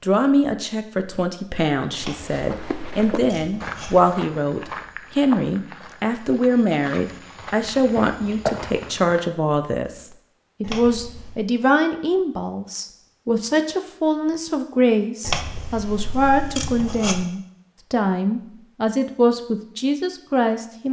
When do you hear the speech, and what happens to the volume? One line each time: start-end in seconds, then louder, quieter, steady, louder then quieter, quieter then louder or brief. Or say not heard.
0.0-20.8 steady.